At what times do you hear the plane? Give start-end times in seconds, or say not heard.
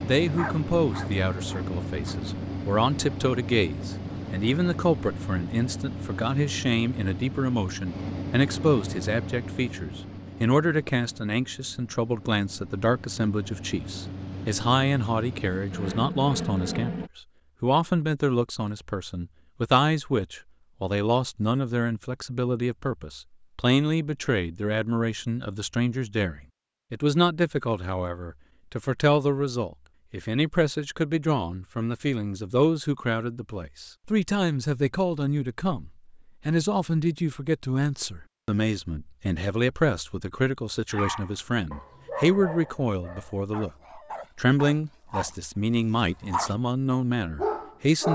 0.0-17.1.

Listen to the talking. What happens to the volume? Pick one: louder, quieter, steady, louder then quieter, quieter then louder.
steady.